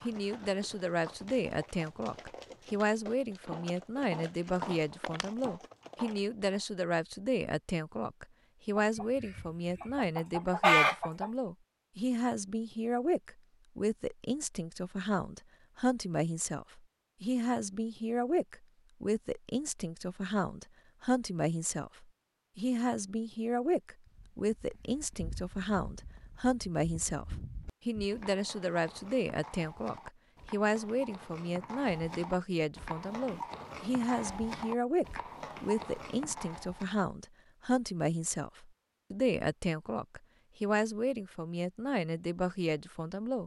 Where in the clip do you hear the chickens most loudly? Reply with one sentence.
The loudest moment of the chickens is at 11 seconds.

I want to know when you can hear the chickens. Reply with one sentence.
You can hear the chickens from 8.8 to 11.3 s.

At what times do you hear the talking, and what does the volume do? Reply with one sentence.
The talking can be heard from 0.0 to 43.4 s, at a steady volume.